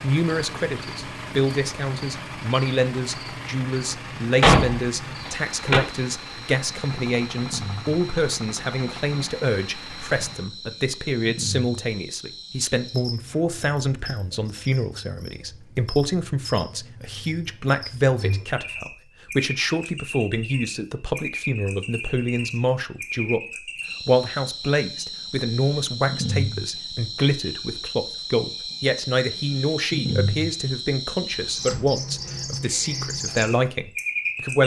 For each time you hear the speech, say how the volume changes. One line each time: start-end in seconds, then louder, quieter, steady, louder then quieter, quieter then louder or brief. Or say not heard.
0.0-23.4 steady
24.0-34.6 steady.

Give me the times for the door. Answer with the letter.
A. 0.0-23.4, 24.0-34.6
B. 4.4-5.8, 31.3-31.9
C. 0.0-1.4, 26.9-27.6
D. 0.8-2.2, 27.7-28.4
B.